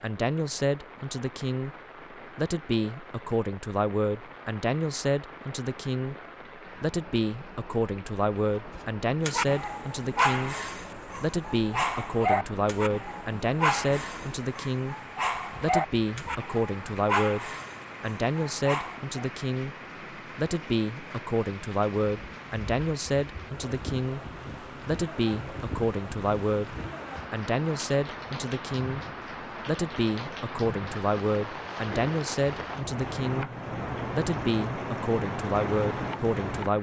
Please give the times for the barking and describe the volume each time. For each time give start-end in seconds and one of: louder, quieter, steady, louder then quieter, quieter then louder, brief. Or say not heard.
8.8-19.2 steady.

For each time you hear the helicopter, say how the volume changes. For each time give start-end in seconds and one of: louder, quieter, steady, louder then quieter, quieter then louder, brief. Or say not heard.
not heard.